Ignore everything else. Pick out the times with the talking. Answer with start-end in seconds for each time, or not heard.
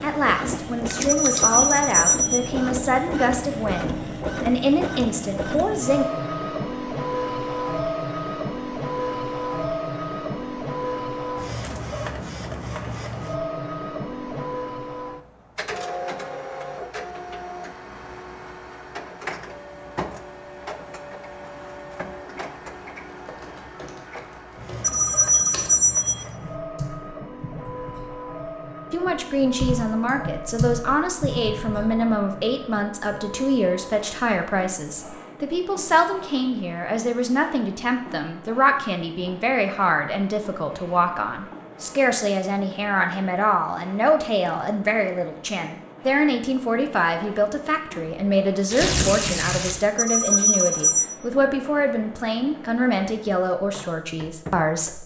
0.0-6.0, 28.9-55.0.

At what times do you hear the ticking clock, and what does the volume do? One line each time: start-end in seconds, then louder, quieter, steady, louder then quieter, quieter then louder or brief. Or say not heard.
not heard.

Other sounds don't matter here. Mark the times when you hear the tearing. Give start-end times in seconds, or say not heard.
48.7-49.8.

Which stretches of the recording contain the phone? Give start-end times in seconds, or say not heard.
1.1-2.5, 24.8-26.2, 50.0-51.1.